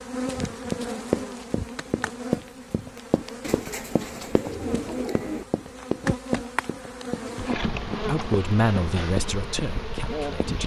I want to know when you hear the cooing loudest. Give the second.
5 s.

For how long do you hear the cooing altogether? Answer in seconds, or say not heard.
2 s.